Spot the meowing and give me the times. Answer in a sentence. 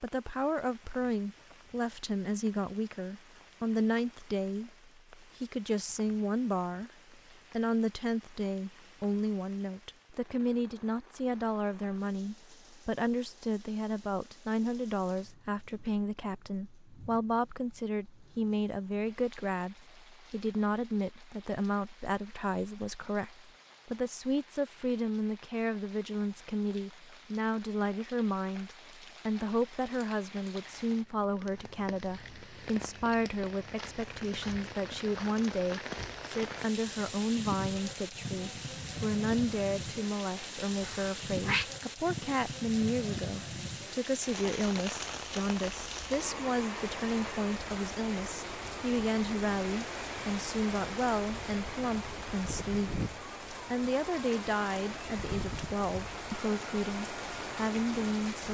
The meowing can be heard from 40.8 to 41.6 s.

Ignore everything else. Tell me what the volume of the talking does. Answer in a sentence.
The volume of the talking stays about the same.